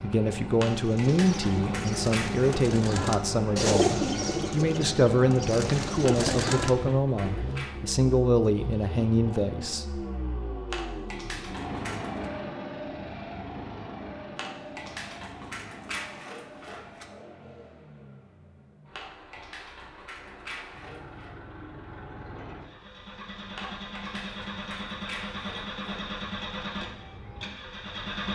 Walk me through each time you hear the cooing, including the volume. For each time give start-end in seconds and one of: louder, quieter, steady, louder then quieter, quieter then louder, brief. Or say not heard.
0.8-6.8 louder then quieter.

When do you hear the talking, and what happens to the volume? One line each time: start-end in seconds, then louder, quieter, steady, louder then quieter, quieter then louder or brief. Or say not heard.
0.0-10.1 steady.